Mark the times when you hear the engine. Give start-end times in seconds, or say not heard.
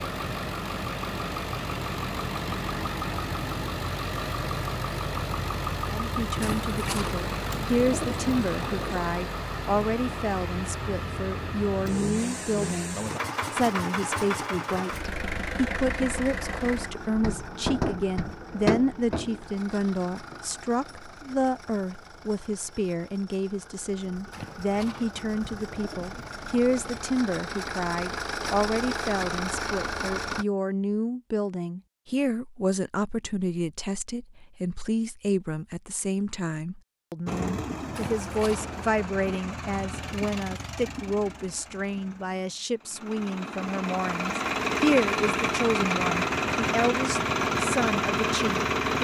0.0-30.4, 37.2-48.9.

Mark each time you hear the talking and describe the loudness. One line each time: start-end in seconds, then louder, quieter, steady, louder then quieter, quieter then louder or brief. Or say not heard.
5.8-48.9 steady.